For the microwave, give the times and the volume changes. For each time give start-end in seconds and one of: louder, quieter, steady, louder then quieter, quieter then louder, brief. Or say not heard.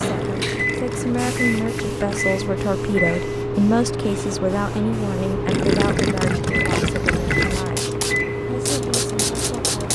0.0-9.9 steady.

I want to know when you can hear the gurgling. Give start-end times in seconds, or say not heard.
0.1-2.2, 5.5-7.7.